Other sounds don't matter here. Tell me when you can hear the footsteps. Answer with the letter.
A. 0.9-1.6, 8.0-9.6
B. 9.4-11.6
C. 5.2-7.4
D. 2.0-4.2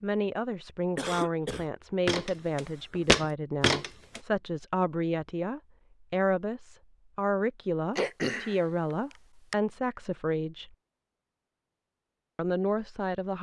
D.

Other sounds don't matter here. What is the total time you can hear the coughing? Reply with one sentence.
You can hear the coughing for 2 seconds altogether.